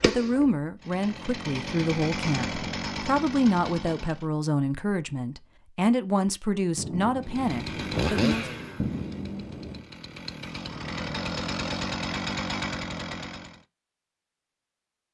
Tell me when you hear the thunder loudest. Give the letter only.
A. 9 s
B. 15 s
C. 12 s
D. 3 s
A.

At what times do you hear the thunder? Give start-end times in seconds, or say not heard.
6.8-9.8.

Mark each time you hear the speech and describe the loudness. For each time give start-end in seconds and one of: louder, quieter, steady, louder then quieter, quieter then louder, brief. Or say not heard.
0.1-8.4 steady.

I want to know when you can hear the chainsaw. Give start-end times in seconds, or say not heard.
0.0-4.2, 7.2-13.6.